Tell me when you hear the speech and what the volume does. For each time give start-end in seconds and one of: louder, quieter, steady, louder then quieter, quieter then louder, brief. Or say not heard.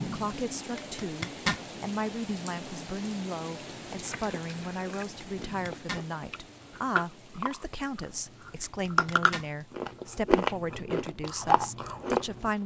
0.0-12.6 steady.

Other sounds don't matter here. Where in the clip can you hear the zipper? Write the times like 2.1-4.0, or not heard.
0.8-1.6, 5.2-6.0, 8.7-9.5.